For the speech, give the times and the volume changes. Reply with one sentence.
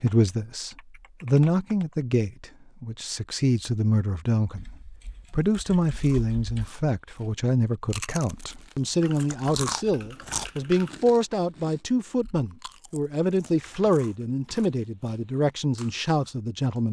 You can hear the speech from 0.0 to 16.8 s, at a steady volume.